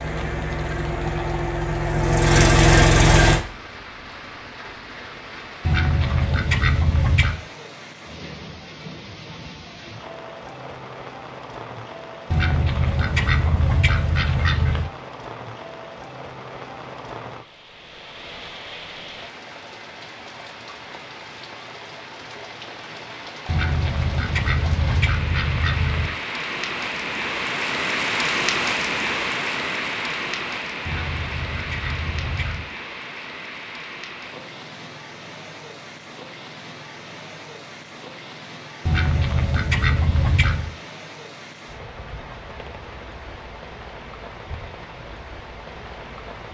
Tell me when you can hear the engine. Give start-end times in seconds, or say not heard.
0.0-3.4.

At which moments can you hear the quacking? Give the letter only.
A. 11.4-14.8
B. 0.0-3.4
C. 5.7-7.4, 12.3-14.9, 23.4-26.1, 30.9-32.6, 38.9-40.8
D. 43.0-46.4
C.